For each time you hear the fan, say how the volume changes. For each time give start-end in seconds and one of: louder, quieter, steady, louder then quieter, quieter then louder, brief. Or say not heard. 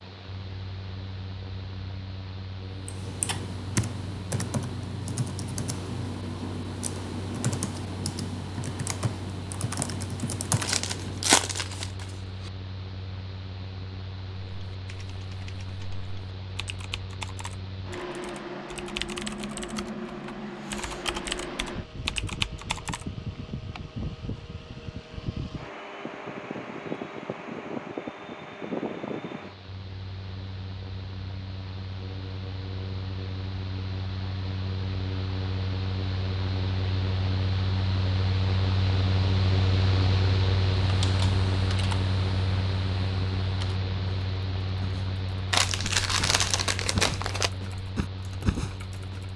0.0-49.3 louder.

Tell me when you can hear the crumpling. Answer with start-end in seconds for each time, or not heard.
10.6-12.5, 45.5-47.5.